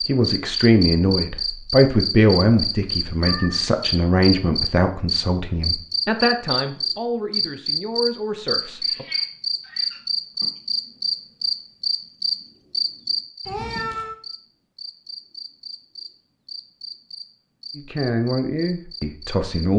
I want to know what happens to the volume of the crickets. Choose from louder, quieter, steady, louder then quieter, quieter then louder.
quieter.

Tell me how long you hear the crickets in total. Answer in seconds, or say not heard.
20 s.